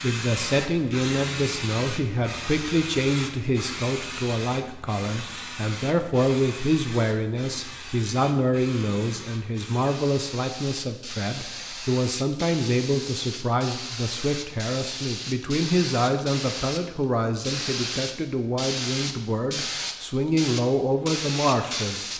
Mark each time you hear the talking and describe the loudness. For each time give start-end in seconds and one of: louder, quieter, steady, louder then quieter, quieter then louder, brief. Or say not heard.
0.0-22.1 steady.